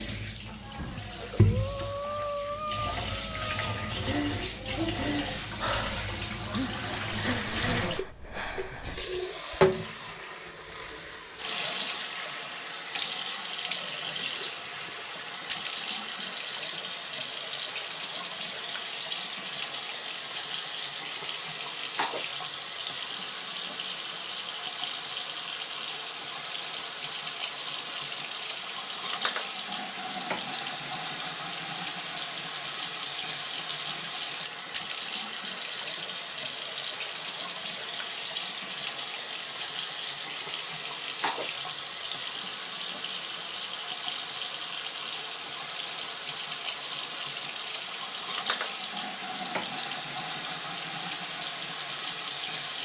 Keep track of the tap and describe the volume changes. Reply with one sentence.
The volume of the tap stays about the same.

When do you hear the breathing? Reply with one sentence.
You can hear the breathing from 0.8 to 9.1 s.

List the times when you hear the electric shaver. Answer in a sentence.
You can't hear the electric shaver here.